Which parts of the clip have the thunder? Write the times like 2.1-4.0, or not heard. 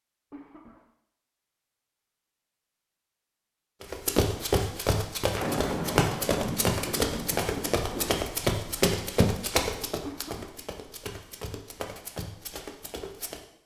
5.3-8.3.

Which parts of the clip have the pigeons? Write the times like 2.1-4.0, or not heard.
not heard.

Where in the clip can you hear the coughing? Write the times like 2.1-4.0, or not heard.
0.3-0.8, 10.1-10.6.